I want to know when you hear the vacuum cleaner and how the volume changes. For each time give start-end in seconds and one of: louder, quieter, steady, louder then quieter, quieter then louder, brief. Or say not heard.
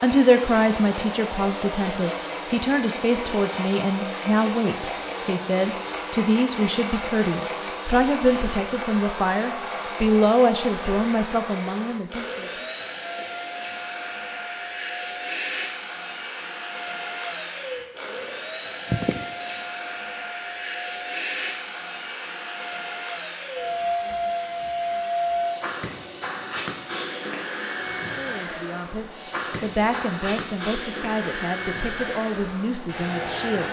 0.0-33.6 steady.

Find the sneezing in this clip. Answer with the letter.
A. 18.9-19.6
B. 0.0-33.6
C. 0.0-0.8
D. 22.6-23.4
A.